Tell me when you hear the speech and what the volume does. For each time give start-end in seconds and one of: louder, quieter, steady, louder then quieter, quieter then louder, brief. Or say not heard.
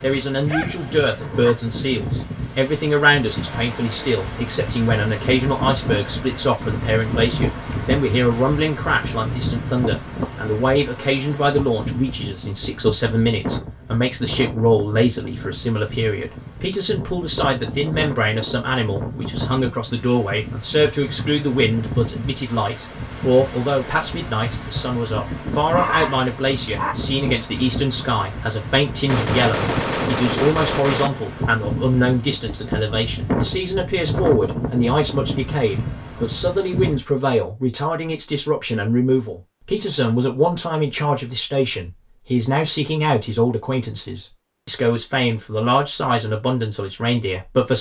0.0-47.7 steady.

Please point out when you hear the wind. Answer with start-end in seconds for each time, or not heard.
0.0-37.0.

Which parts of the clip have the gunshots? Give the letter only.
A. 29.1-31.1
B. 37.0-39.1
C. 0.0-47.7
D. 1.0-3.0
A.